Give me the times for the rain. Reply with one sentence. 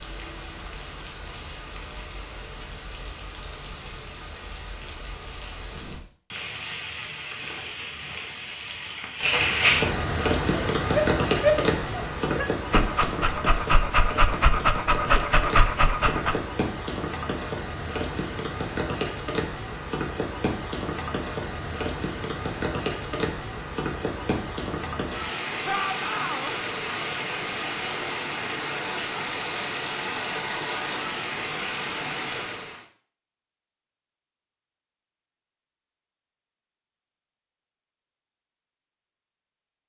You can hear the rain from 0.0 to 32.9 s.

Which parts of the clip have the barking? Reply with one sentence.
You can hear the barking from 10.5 to 16.4 s.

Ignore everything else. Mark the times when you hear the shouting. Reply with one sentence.
The shouting can be heard from 25.6 to 26.6 s.